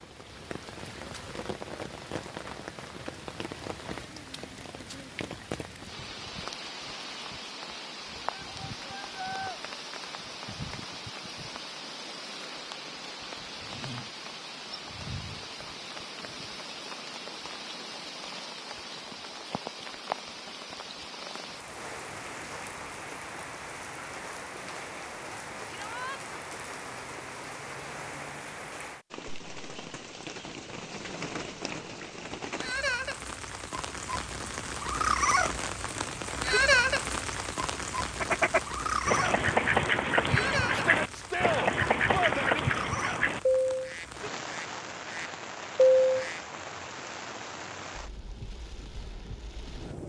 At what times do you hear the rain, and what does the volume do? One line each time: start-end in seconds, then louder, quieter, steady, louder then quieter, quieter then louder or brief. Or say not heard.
0.0-50.0 louder then quieter.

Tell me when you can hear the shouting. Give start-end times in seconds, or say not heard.
8.3-9.6, 25.7-26.2, 40.7-42.6.